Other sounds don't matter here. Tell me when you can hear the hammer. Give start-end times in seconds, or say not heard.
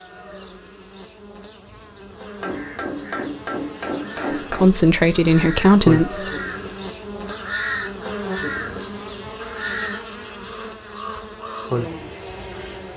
2.4-4.7.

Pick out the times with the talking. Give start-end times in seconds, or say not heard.
4.3-6.2.